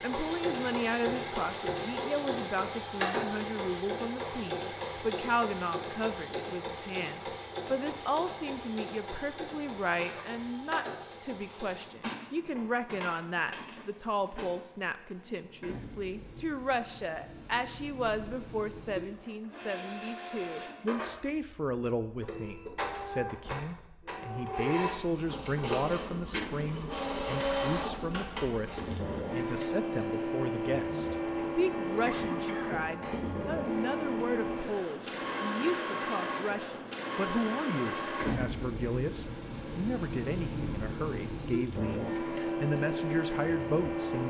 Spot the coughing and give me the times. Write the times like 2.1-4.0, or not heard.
9.9-10.3, 26.3-26.8, 32.0-32.8.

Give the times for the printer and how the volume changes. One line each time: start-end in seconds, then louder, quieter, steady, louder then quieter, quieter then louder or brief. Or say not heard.
0.0-44.2 quieter then louder.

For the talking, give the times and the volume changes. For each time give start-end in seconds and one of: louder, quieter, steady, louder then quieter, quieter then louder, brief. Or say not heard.
0.0-44.2 steady.